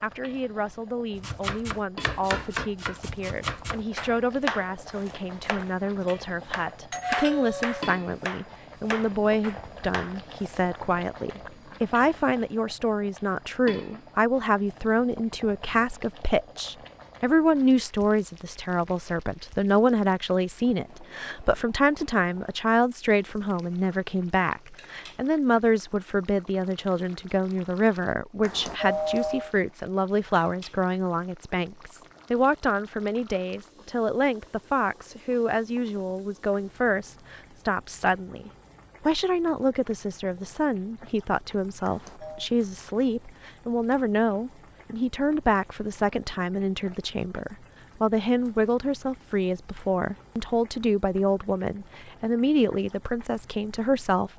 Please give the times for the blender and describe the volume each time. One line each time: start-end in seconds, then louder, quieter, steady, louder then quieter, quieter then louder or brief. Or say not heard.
not heard.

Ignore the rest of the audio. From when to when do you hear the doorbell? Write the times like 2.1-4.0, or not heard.
6.9-7.9, 28.4-29.6, 41.8-42.5.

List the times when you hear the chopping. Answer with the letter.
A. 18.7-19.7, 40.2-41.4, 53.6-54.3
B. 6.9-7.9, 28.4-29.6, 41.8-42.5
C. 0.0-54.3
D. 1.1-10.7
D.